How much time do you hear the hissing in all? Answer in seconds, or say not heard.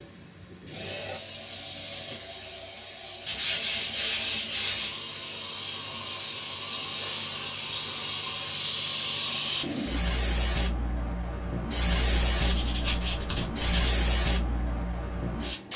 16 s.